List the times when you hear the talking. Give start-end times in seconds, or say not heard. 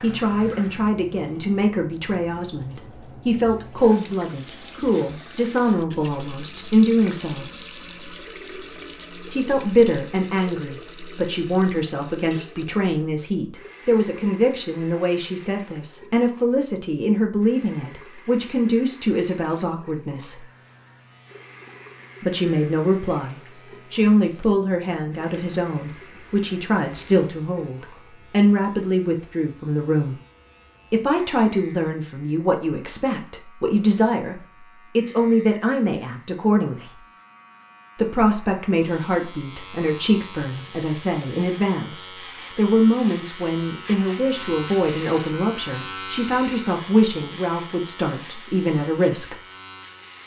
0.0-7.5, 9.3-20.4, 22.2-30.1, 30.9-37.0, 38.0-49.4.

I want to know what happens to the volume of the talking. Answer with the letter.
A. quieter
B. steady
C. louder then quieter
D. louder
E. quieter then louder
B.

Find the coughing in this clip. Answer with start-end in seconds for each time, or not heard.
not heard.